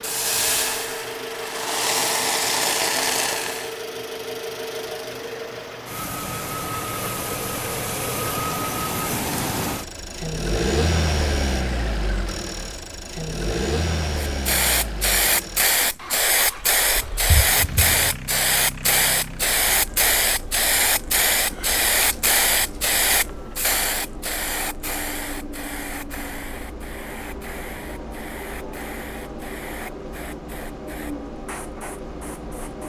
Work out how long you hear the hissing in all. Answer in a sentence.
You can hear the hissing for 22 seconds altogether.